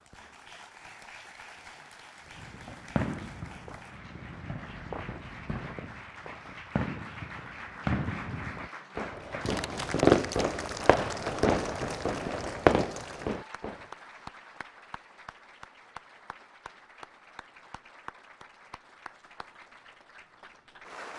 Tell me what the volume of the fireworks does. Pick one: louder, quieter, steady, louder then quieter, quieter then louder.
louder.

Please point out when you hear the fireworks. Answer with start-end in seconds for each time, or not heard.
2.3-13.8.